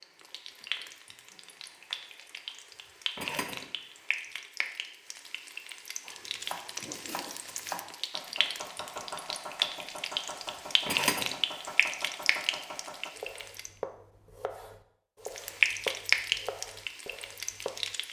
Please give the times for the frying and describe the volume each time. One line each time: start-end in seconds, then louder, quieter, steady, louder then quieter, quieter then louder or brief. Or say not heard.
0.0-13.7 louder
15.2-18.0 brief.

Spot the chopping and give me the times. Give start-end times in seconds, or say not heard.
6.0-17.9.